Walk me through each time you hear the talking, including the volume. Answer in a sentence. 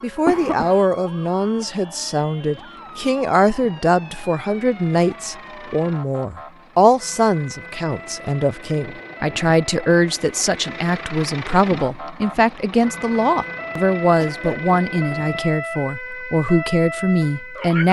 The talking can be heard from 0.0 to 17.8 s, at a steady volume.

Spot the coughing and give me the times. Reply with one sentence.
The coughing can be heard from 0.2 to 0.8 s and from 14.2 to 14.6 s.